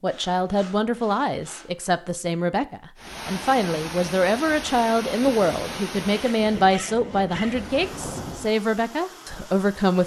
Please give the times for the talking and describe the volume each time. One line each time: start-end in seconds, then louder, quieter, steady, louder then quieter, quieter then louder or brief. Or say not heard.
0.0-10.0 steady.